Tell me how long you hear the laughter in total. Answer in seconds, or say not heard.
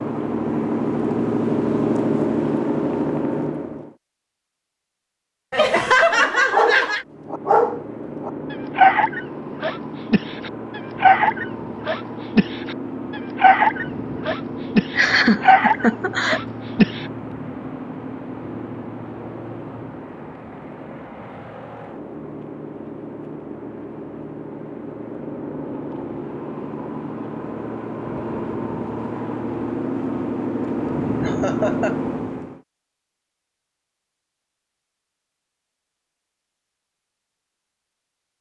4 s.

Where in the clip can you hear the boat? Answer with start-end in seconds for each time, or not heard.
0.0-4.0, 7.0-32.6.